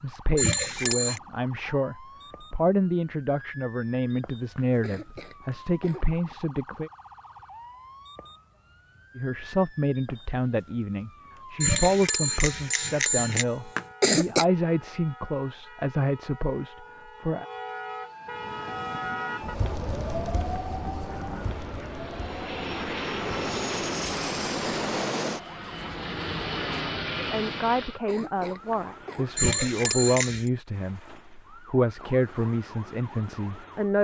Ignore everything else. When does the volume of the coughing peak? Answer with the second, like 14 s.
14 s.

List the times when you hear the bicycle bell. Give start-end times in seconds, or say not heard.
0.3-1.2, 11.6-13.4, 29.4-30.5.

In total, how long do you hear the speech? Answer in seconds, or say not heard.
22 s.